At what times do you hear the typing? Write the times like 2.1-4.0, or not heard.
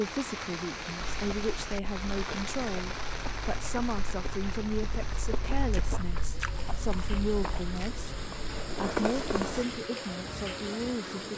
not heard.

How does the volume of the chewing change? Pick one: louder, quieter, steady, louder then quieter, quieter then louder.
louder.